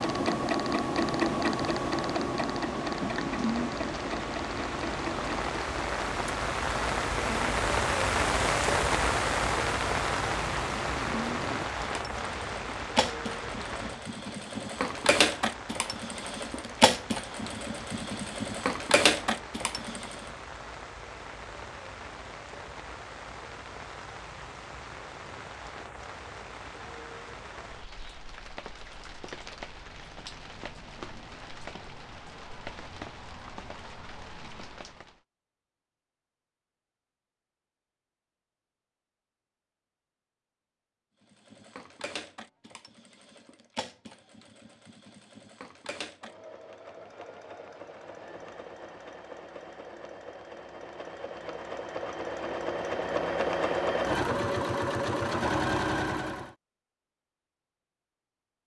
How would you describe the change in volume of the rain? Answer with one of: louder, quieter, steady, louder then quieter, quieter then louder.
quieter.